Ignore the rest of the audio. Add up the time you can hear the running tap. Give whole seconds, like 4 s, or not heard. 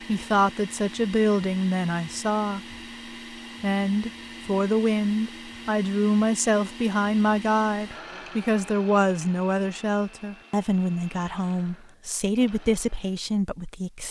not heard.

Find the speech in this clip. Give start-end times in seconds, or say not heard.
0.1-2.6, 3.6-14.0.